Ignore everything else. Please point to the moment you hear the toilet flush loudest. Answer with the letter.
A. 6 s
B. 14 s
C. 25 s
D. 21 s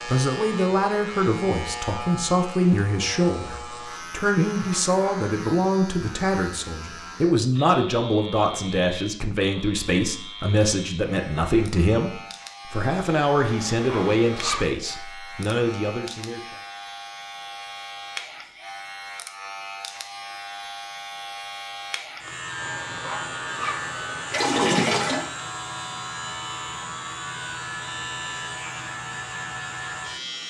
C.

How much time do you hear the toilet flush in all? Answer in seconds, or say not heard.
5 s.